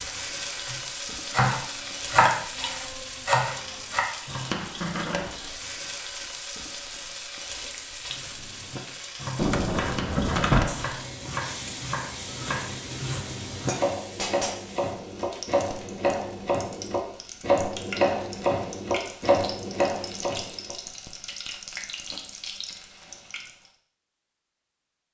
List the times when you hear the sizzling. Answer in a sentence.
The sizzling can be heard from 0.0 to 23.7 s.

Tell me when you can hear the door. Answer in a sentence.
You can hear the door from 9.3 to 10.8 s.